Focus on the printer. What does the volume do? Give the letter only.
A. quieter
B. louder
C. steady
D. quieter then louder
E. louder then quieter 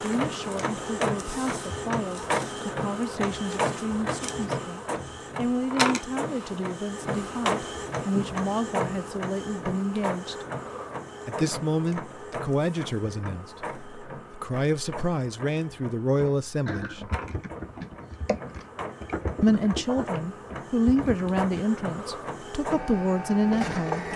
D.